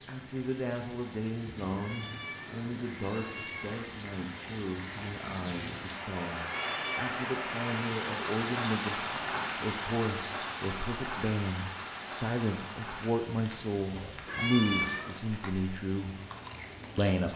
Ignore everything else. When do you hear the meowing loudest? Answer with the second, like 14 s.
15 s.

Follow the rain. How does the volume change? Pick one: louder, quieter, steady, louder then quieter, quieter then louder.
louder then quieter.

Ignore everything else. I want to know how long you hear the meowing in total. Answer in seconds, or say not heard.
4 s.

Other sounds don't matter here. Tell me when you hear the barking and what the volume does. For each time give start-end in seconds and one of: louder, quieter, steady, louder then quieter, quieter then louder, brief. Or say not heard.
not heard.